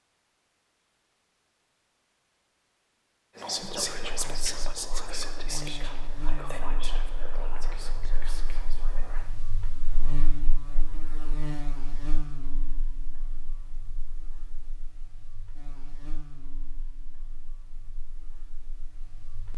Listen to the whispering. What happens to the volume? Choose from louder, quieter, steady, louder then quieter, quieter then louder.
quieter.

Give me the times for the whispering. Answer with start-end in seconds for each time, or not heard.
3.4-9.2.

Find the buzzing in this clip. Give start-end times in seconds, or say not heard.
3.6-19.5.